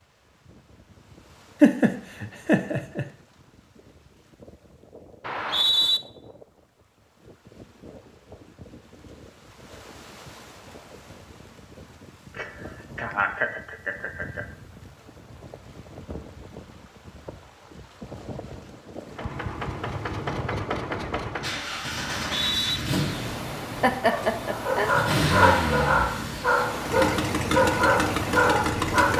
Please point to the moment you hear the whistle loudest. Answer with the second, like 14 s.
6 s.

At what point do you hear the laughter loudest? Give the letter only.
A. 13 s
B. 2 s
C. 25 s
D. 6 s
B.